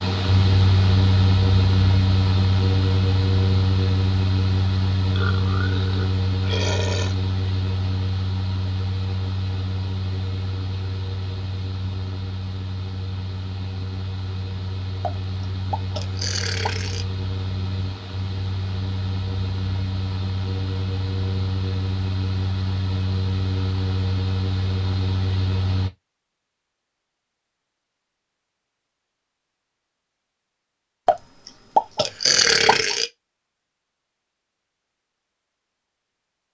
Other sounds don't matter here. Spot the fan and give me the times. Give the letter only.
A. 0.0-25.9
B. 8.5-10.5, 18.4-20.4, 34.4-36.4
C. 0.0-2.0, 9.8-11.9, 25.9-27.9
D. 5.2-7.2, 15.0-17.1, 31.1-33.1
A.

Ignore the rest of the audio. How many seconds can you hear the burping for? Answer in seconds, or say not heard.
6 s.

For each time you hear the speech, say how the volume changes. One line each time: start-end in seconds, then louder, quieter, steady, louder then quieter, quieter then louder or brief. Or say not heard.
not heard.